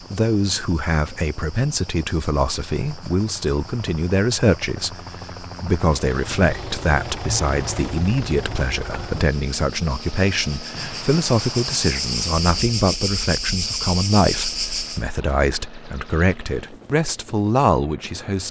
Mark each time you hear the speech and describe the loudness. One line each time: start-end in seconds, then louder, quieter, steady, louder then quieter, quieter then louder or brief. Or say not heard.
0.1-18.4 steady.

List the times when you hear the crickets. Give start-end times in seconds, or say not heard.
0.0-15.1.